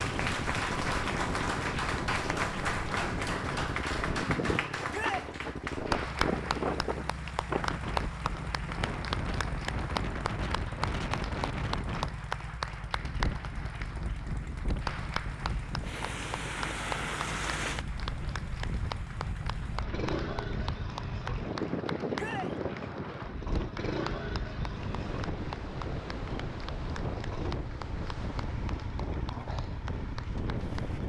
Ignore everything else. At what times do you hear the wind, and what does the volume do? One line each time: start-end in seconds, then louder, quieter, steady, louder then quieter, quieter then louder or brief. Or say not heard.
0.0-31.0 steady.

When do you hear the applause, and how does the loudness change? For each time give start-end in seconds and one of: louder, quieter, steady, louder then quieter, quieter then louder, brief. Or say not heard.
0.0-31.0 quieter.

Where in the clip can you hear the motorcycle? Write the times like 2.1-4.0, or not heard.
0.0-31.0.